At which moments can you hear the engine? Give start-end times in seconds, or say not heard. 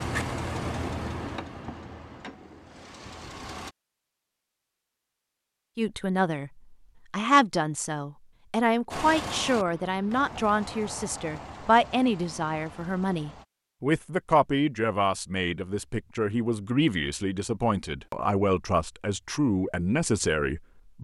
0.0-3.8, 8.9-13.4.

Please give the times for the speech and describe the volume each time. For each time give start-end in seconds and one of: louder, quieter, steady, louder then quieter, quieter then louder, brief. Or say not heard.
5.8-21.0 steady.